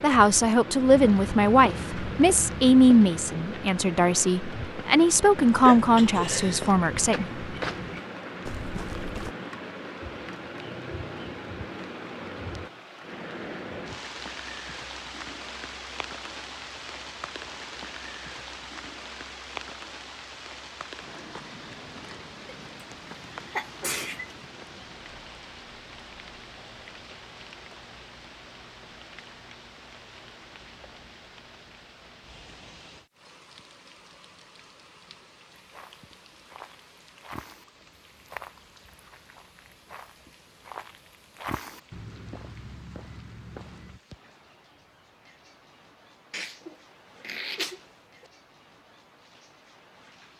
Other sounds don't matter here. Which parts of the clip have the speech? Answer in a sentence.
The speech can be heard from 0.0 to 7.3 s.